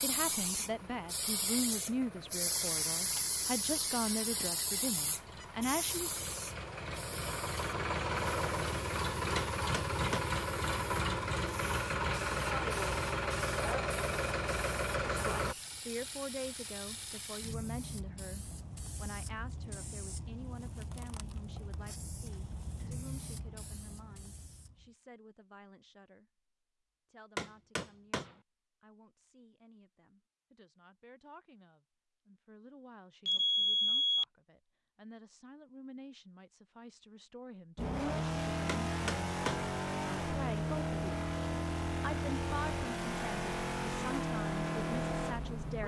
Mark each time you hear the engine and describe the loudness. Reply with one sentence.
The engine can be heard from 0.0 to 15.6 s, getting louder; and from 37.8 to 45.8 s, at a steady volume.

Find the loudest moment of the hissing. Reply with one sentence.
The volume of the hissing peaks at 3 seconds.